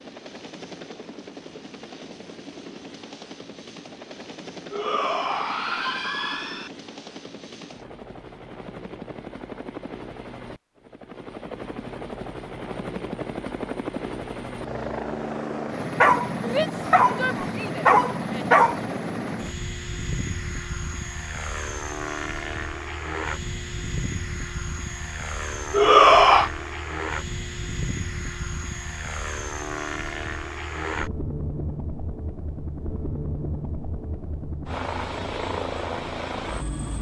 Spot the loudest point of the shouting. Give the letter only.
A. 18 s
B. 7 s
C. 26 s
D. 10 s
C.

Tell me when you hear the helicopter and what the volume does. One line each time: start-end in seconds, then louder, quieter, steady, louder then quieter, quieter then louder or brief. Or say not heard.
0.0-36.9 louder.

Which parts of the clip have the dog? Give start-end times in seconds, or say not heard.
16.0-18.8.